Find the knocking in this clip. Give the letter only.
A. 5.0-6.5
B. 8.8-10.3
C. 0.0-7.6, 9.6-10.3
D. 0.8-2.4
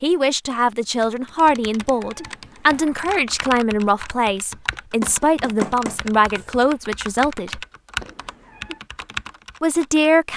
A.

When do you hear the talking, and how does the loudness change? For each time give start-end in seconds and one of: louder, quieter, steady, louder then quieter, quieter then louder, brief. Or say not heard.
0.0-7.6 steady
9.6-10.3 brief.